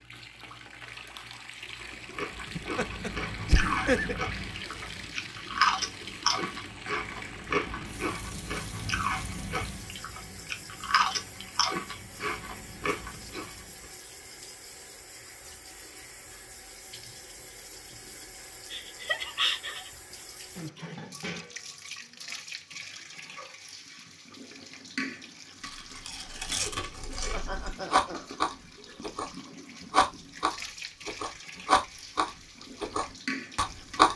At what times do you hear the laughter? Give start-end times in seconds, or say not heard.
2.5-4.2, 18.7-19.9, 27.3-28.4.